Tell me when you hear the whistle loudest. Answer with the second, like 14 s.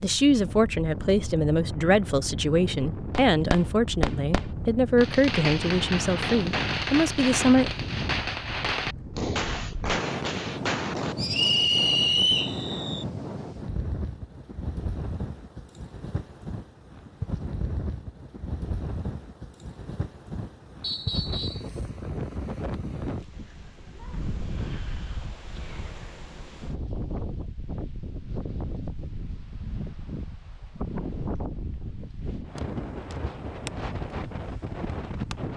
12 s.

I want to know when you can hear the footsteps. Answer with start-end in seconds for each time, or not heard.
not heard.